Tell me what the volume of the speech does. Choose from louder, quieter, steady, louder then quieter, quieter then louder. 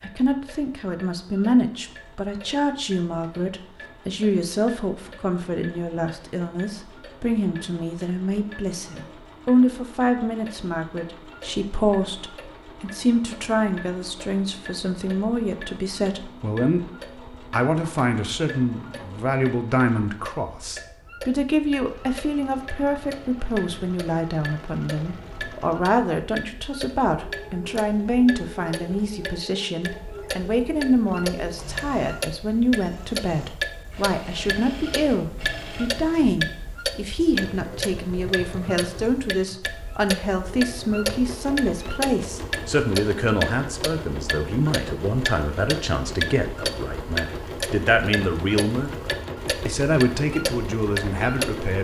steady.